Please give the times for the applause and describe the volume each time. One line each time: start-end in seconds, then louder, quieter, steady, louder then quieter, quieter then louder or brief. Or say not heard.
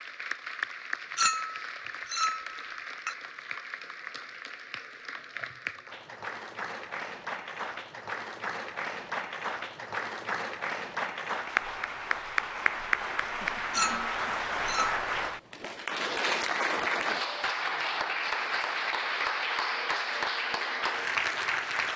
0.0-21.9 louder.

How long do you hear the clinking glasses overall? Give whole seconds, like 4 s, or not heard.
3 s.